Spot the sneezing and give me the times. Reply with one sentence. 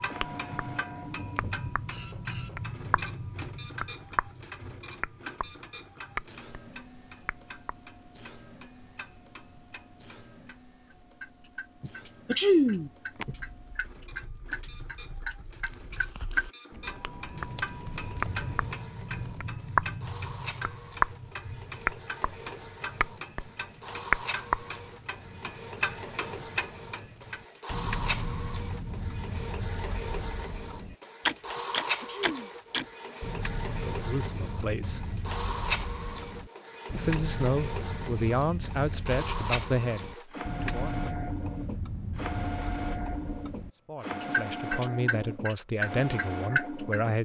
The sneezing can be heard from 11.8 to 13.3 s and from 31.6 to 32.5 s.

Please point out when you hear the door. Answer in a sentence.
The door can't be heard in this clip.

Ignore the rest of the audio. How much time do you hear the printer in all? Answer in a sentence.
The printer can be heard for 47 seconds in total.